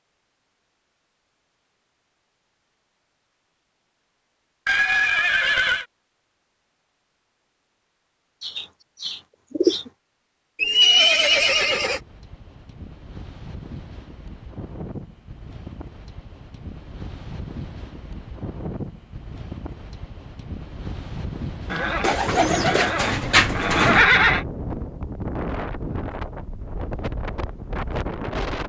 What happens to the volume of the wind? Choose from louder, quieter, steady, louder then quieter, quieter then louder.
louder.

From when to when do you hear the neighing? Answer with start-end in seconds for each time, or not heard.
4.7-5.8, 10.6-12.0, 21.7-24.4.